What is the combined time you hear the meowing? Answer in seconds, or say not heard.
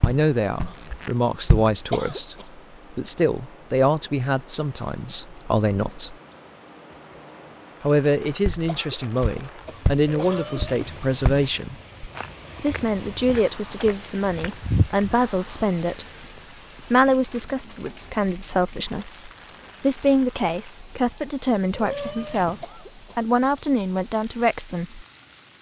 2 s.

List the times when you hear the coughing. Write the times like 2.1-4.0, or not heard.
1.9-2.5, 8.7-10.7, 22.6-23.4.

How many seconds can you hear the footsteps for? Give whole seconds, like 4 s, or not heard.
8 s.